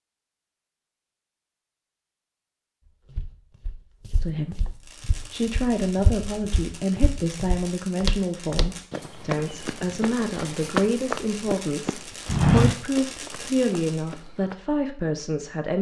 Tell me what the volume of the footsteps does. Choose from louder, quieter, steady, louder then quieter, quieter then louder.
louder.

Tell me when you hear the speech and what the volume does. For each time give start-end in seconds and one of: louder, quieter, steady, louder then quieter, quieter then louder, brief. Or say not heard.
4.2-4.7 brief
5.3-15.7 steady.